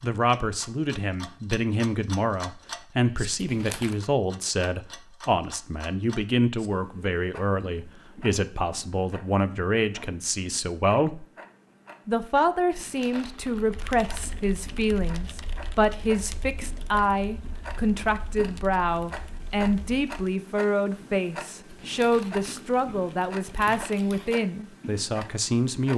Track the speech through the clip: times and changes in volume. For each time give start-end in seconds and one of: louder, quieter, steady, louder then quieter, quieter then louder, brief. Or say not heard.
0.0-11.2 steady
12.1-25.9 steady.